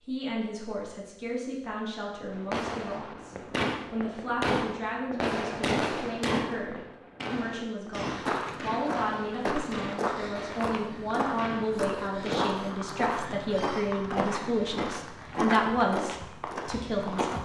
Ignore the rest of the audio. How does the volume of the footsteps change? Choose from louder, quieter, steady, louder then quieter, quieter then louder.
steady.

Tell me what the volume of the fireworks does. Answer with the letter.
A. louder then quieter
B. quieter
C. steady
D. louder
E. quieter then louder
B.